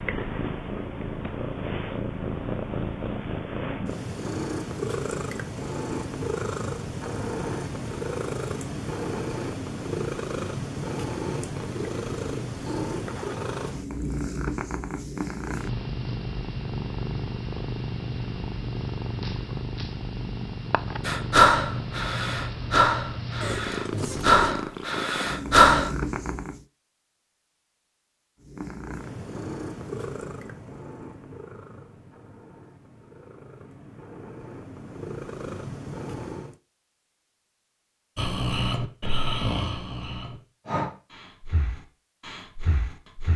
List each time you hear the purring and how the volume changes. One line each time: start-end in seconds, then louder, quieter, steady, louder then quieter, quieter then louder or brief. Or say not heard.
0.0-26.6 steady
28.4-36.6 quieter then louder.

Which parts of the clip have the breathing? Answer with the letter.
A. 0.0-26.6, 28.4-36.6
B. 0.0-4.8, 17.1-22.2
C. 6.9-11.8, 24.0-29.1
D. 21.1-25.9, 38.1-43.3
D.